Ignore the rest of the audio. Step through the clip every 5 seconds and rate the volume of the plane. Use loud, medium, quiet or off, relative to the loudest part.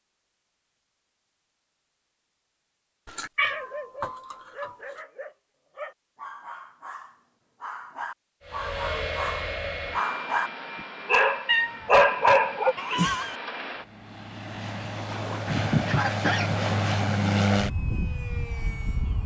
off, loud, medium, loud.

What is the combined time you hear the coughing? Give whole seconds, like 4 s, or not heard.
2 s.